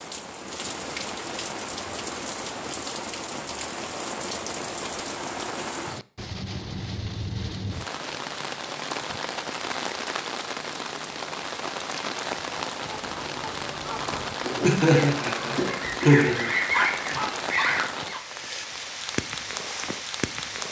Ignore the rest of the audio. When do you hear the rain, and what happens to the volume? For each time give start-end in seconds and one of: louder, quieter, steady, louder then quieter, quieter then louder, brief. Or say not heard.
0.0-20.6 steady.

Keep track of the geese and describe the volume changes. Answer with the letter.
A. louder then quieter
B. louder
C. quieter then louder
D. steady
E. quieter
B.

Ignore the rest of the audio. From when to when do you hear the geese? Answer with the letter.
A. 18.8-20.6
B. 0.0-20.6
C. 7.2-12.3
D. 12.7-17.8
D.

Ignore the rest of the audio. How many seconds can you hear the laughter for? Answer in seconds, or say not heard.
2 s.